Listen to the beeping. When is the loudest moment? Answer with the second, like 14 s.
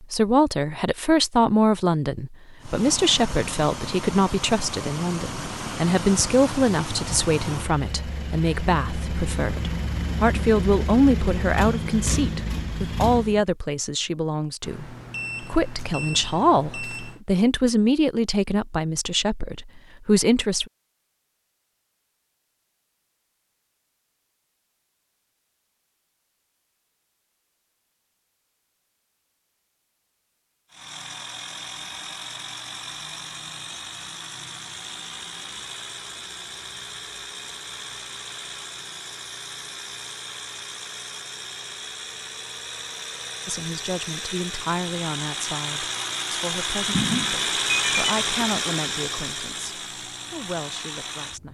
48 s.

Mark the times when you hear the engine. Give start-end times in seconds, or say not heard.
2.6-13.4, 30.7-51.4.